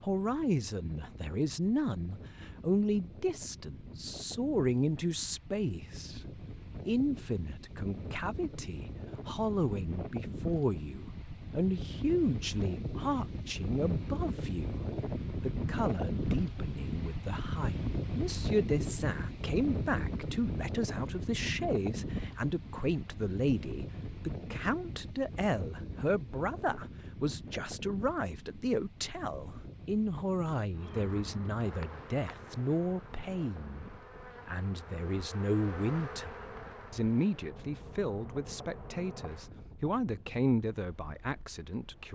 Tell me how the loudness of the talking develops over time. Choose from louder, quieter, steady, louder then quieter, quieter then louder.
steady.